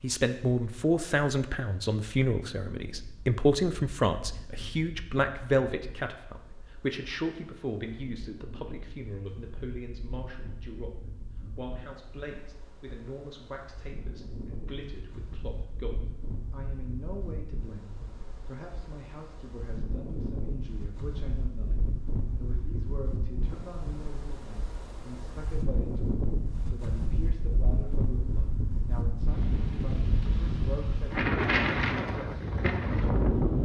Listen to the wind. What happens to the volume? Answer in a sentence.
The volume of the wind goes up.